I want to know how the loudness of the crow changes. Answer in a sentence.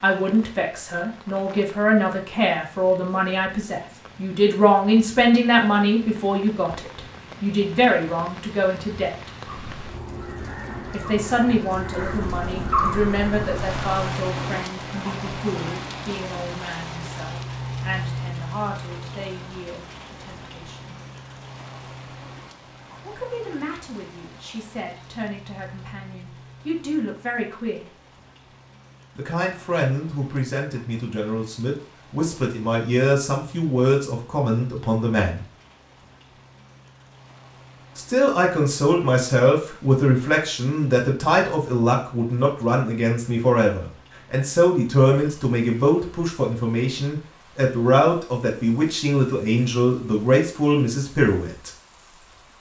The volume of the crow goes up.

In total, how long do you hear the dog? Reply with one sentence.
You can't hear the dog here.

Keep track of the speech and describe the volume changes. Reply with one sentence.
The volume of the speech goes down, then up.